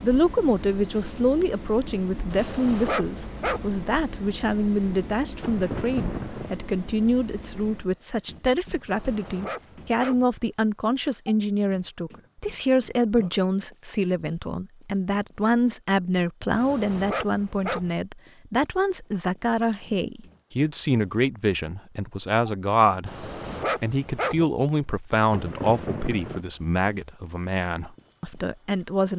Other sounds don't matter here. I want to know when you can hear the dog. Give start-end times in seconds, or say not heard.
2.3-3.7, 8.8-10.2, 16.5-17.9, 23.1-24.4.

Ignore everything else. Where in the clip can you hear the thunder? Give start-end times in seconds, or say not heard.
5.4-6.5, 25.3-26.4.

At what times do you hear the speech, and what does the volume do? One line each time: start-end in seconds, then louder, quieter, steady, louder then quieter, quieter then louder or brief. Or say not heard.
0.0-29.1 steady.